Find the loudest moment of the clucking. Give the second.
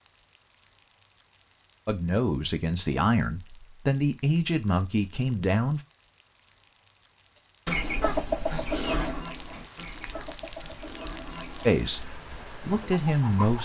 8 s.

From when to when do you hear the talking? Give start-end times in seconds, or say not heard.
1.9-5.8, 11.7-13.6.